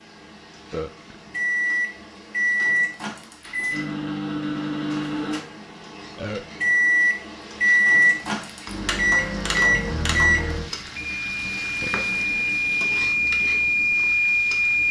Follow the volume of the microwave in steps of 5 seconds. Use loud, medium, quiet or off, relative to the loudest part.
medium, loud, loud.